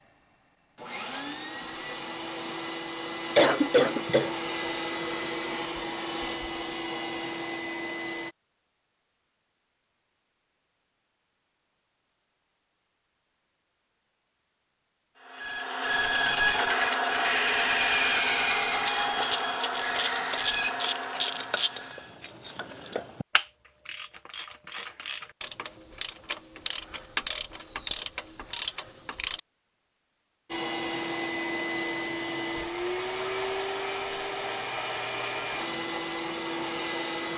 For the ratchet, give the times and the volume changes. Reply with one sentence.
The ratchet can be heard from 18.6 to 29.4 s, getting quieter then louder.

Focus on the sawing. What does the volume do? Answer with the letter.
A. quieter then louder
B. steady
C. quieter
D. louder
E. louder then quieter
C.